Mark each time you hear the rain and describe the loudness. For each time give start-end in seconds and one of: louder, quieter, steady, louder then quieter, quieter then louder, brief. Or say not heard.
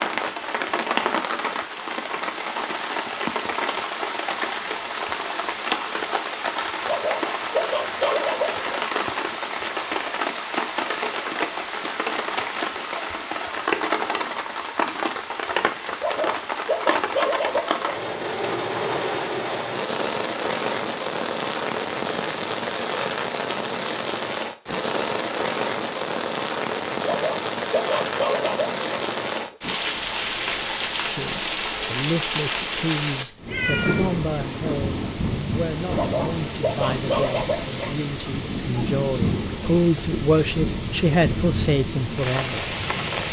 0.0-43.2 steady.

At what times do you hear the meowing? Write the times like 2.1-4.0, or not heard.
33.5-34.1.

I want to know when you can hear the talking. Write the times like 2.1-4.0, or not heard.
31.1-42.8.